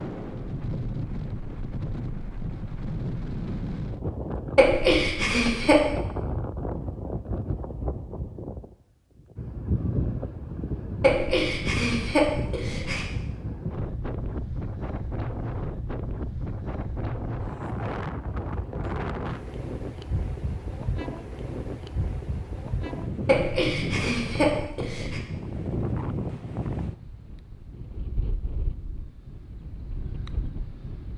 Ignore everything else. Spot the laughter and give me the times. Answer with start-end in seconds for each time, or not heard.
4.5-5.9, 11.0-13.1, 23.2-25.2.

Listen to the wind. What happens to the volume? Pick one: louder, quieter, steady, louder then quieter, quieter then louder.
steady.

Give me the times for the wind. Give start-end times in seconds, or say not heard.
0.0-31.1.